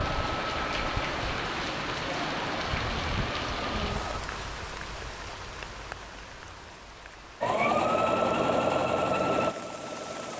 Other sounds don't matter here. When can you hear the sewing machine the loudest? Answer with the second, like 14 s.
8 s.